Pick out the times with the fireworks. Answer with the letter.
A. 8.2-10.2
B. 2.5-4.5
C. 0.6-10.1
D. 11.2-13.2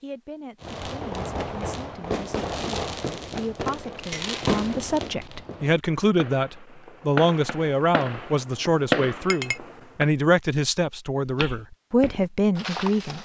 C.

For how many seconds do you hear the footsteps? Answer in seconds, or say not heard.
2 s.